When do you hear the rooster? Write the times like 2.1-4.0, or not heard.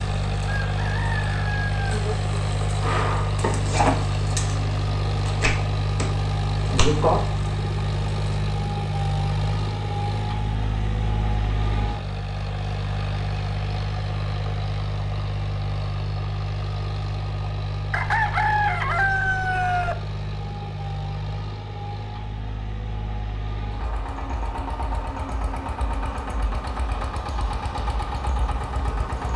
0.5-2.0, 17.9-19.9.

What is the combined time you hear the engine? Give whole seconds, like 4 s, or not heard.
29 s.